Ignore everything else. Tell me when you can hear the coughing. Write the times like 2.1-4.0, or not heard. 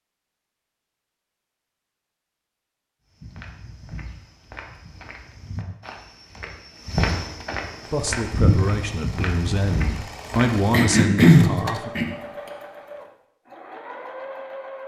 10.7-12.1.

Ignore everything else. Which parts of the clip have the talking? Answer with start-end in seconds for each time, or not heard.
7.8-11.9.